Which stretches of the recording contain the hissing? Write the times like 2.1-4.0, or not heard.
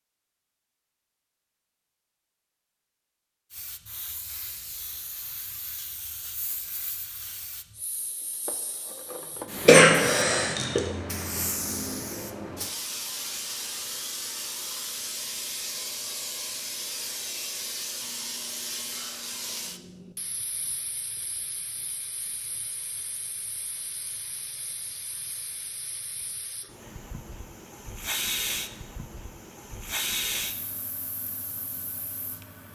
3.5-32.6.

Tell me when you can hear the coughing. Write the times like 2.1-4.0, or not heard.
9.7-10.8.